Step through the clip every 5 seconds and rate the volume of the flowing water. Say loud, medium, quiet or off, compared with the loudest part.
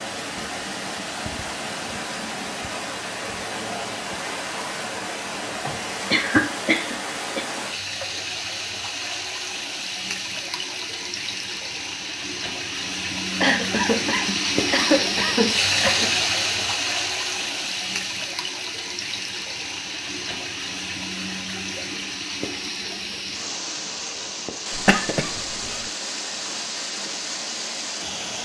medium, medium, loud, loud, medium, medium.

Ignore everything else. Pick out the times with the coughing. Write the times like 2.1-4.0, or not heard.
5.7-7.5, 13.4-16.1, 24.8-25.9.